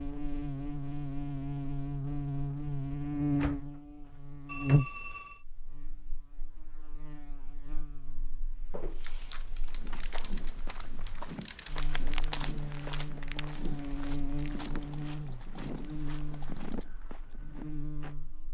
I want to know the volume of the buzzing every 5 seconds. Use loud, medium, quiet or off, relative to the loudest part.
loud, quiet, medium, medium.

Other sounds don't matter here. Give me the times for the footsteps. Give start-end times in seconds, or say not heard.
8.6-18.1.